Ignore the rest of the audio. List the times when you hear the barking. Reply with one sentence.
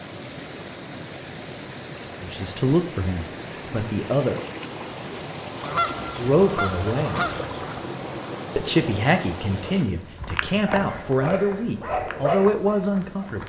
The barking can be heard from 10.7 to 13.4 s.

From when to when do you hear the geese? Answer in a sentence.
The geese can be heard from 5.6 to 7.5 s.